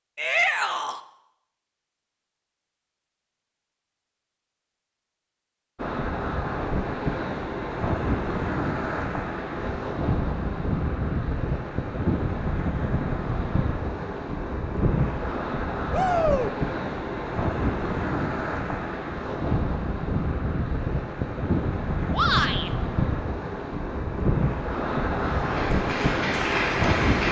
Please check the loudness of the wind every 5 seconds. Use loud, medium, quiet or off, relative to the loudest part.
off, loud, loud, loud, loud, loud.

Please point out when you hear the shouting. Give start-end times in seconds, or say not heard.
0.1-1.0, 15.9-16.5, 22.1-22.7.